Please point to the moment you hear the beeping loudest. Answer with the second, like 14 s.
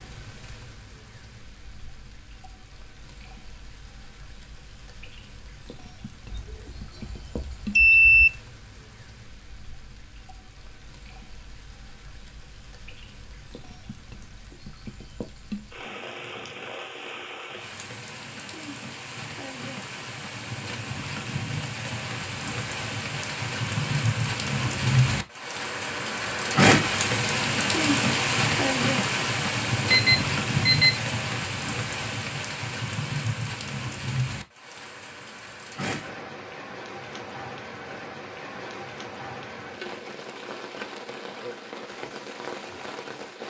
8 s.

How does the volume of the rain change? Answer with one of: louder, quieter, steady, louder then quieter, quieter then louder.
louder then quieter.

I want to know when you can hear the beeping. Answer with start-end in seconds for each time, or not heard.
6.3-8.3, 29.9-31.0.